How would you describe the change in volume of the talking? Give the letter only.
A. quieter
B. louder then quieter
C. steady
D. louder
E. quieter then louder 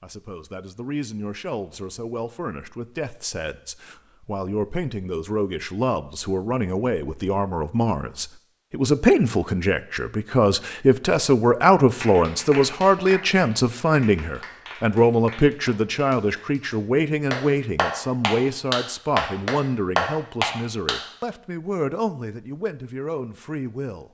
B.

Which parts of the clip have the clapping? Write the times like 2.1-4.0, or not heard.
11.9-21.0.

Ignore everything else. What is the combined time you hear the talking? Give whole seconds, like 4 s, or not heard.
24 s.